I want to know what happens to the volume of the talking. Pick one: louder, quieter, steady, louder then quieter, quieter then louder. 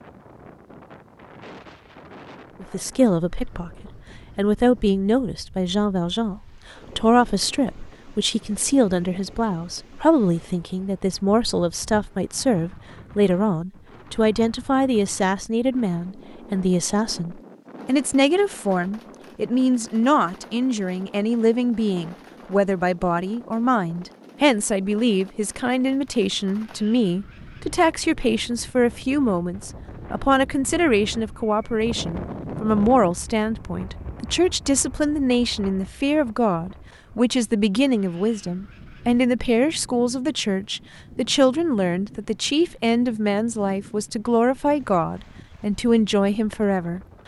steady.